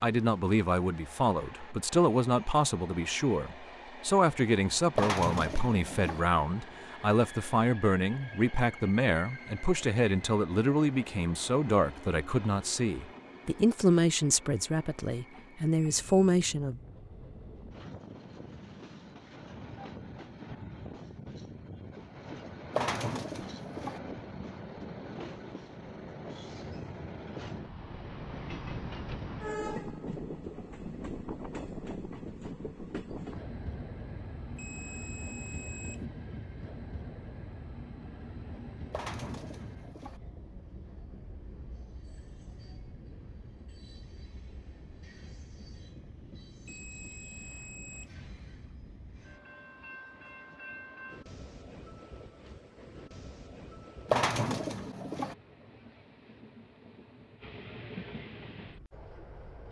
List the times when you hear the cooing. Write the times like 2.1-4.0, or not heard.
5.0-6.2, 22.7-24.0, 38.9-40.2, 54.0-55.4.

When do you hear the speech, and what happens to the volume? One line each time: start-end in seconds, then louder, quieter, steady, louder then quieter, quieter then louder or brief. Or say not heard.
0.0-16.8 steady.